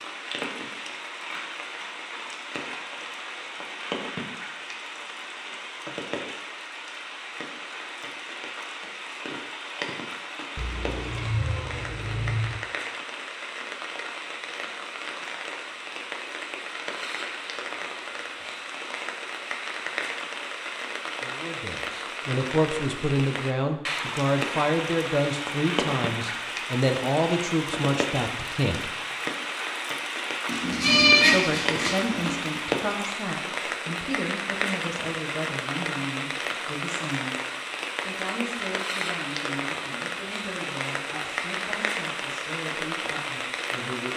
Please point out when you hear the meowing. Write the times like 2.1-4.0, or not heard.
10.6-12.6, 30.4-32.4.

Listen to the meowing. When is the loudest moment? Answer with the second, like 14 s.
31 s.